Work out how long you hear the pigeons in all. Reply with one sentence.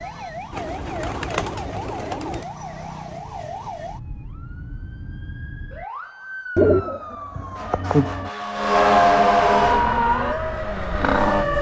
You can hear the pigeons for 4 seconds altogether.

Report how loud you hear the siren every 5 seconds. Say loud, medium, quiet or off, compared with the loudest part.
quiet, loud, loud.